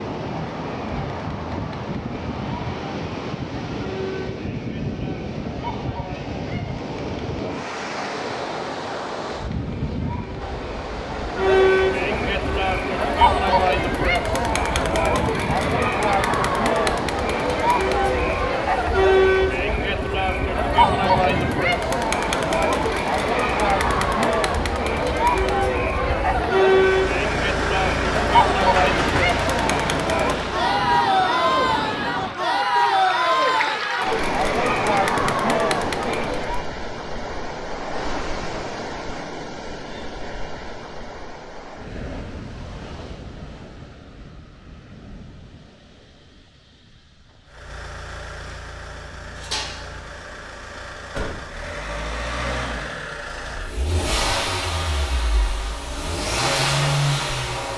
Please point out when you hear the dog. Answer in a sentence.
The dog can't be heard in this clip.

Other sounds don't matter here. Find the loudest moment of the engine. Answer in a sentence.
The loudest moment of the engine is at 57 seconds.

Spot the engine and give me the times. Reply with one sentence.
You can hear the engine from 26.8 to 30.8 s and from 47.5 to 57.7 s.